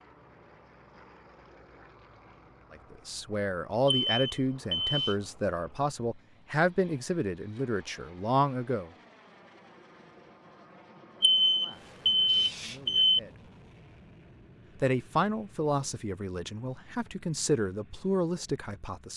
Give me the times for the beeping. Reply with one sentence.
The beeping can be heard from 3.9 to 5.2 s and from 11.2 to 13.2 s.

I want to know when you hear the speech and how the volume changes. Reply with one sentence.
You can hear the speech from 2.7 to 8.9 s, at a steady volume; briefly from 11.6 to 13.4 s; and from 14.8 to 19.1 s, getting quieter then louder.